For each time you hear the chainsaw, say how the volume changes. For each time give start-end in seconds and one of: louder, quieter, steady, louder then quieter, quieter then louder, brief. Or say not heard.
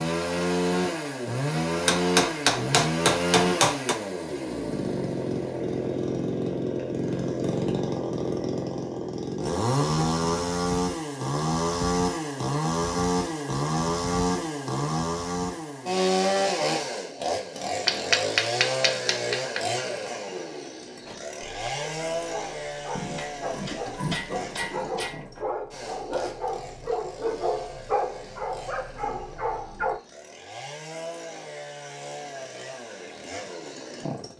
0.0-34.3 quieter.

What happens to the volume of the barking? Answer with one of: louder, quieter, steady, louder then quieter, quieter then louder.
louder.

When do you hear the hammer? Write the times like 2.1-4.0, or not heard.
1.9-4.0, 17.9-19.8, 22.9-25.4.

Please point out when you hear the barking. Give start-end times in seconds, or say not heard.
21.1-30.0.